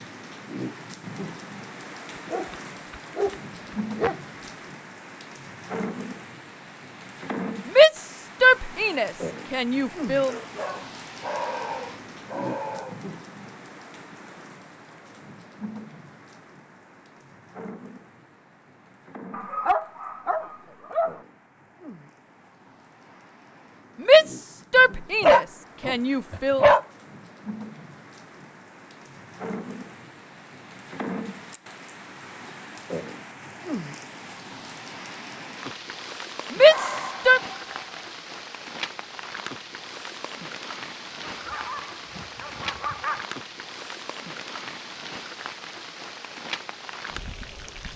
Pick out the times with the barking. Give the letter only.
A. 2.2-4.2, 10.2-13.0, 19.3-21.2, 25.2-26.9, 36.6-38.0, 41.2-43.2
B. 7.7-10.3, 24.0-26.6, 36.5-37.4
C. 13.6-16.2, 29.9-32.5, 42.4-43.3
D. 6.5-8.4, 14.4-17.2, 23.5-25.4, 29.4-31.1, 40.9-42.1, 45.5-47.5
A.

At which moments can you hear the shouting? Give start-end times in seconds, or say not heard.
7.7-10.3, 24.0-26.6, 36.5-37.4.